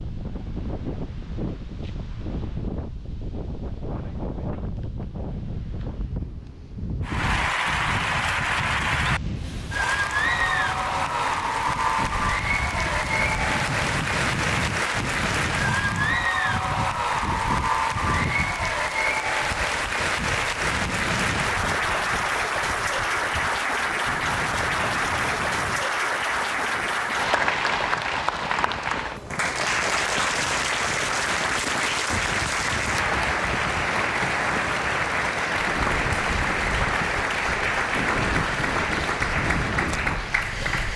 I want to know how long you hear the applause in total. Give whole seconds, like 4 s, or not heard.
34 s.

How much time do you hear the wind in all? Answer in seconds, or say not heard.
41 s.